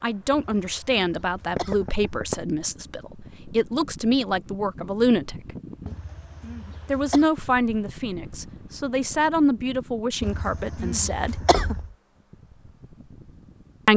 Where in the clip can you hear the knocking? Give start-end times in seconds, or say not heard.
1.6-2.4, 11.5-11.9.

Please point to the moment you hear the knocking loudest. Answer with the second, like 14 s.
2 s.